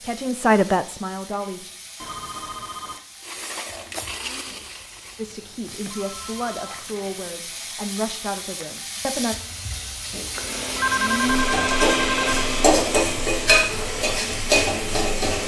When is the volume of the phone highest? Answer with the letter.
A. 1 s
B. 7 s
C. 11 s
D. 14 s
C.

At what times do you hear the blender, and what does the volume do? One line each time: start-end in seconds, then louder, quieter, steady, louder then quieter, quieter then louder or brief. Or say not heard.
3.2-5.2 brief
10.2-15.4 quieter.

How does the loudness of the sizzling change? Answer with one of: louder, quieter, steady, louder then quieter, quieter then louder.
louder.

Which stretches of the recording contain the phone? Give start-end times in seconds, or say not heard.
2.0-3.0, 5.2-7.3, 10.3-12.5.